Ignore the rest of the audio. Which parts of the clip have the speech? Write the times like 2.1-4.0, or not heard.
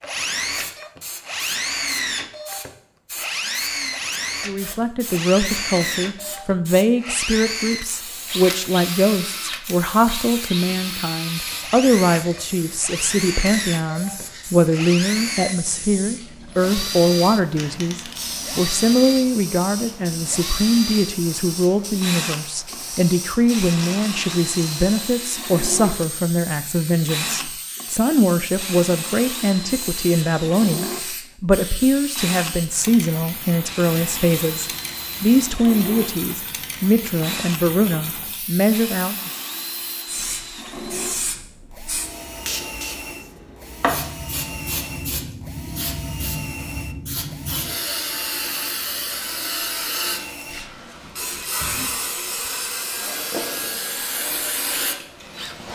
4.5-39.3.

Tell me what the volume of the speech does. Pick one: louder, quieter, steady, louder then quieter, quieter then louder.
steady.